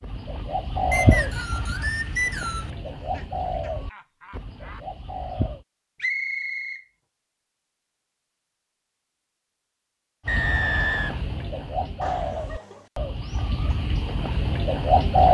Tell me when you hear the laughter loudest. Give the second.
12 s.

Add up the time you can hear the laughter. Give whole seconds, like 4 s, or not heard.
3 s.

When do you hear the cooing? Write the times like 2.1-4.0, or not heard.
0.0-5.7, 10.2-15.2.